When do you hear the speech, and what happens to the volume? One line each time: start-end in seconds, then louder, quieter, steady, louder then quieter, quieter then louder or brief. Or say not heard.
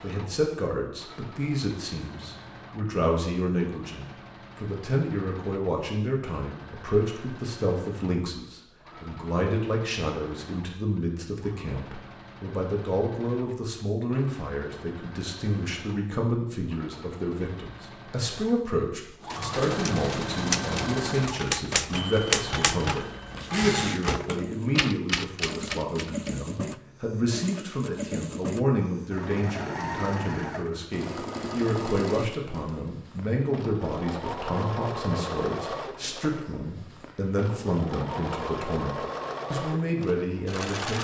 0.0-40.9 steady.